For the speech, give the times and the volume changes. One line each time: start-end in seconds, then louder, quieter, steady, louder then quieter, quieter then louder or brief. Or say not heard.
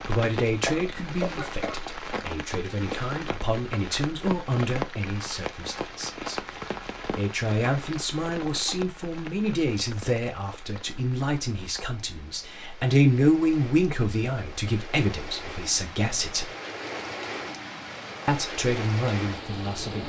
0.0-16.5 louder
18.2-20.0 brief.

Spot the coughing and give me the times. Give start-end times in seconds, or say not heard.
0.7-1.8.